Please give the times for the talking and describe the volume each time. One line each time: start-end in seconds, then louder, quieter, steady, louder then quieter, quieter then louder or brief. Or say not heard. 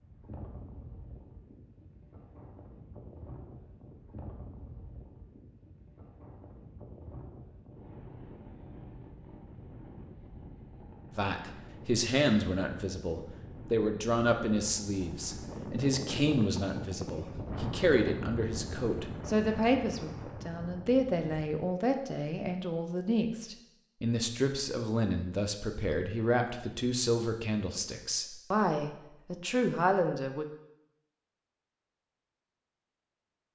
11.2-30.4 steady.